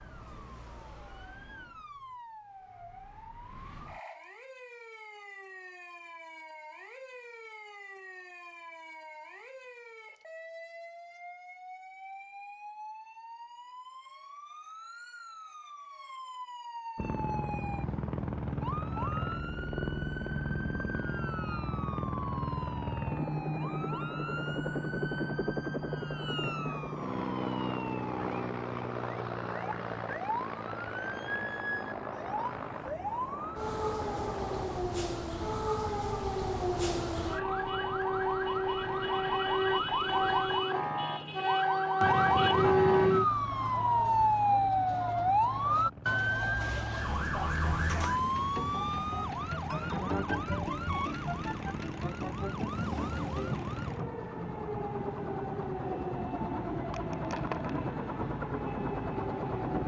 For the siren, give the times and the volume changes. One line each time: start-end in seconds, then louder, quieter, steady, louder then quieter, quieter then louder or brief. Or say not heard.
0.0-59.8 louder then quieter.